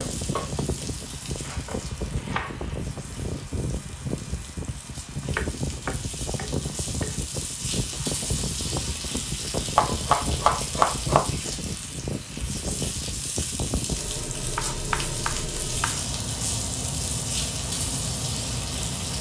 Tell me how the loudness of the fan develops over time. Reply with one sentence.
The loudness of the fan stays about the same.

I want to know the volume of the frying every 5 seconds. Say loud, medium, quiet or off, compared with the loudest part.
medium, loud, loud, loud.